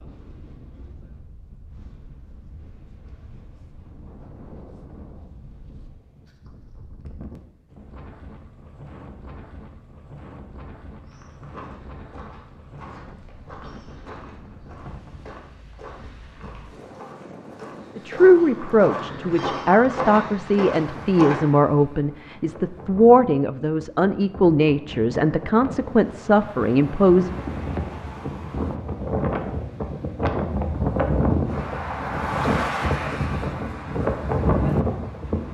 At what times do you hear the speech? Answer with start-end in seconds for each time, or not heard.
17.9-27.3.